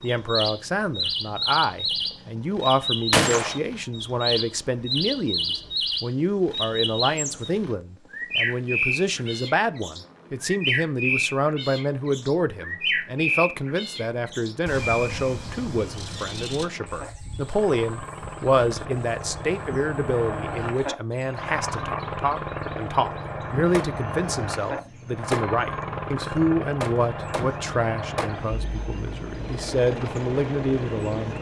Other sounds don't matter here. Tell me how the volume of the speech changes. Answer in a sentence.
The loudness of the speech stays about the same.